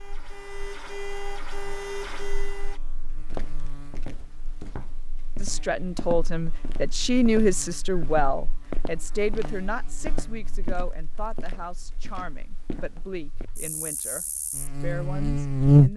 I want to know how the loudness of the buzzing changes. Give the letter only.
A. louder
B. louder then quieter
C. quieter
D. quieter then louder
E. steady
A.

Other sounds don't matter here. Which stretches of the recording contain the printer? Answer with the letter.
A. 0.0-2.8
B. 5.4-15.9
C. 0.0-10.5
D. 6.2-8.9
A.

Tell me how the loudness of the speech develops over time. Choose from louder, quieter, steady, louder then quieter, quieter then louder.
quieter.